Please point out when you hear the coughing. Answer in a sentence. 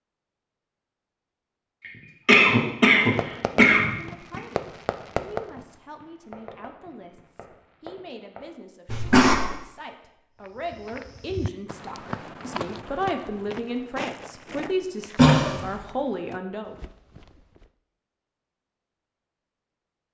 You can hear the coughing from 2.2 to 4.4 s, from 8.8 to 9.3 s and from 15.2 to 15.7 s.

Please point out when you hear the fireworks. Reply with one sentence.
You can hear the fireworks from 3.0 to 8.5 s.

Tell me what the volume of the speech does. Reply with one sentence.
The volume of the speech goes up.